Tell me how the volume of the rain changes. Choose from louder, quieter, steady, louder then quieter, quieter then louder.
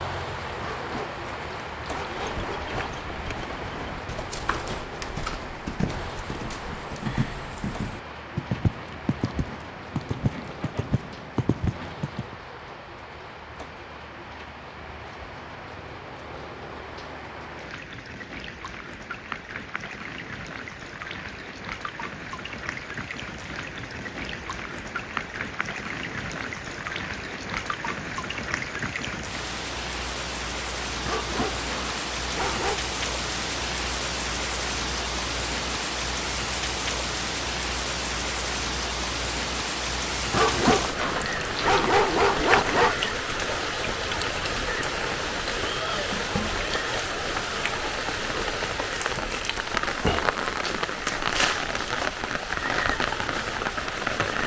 louder.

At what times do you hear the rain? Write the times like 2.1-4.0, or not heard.
0.0-54.4.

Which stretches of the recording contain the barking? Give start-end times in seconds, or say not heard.
0.6-3.0, 31.1-32.8, 40.3-43.0.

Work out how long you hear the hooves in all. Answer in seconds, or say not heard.
10 s.